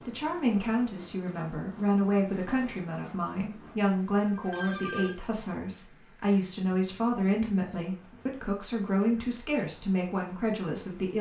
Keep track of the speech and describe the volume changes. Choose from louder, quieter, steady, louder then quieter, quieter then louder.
steady.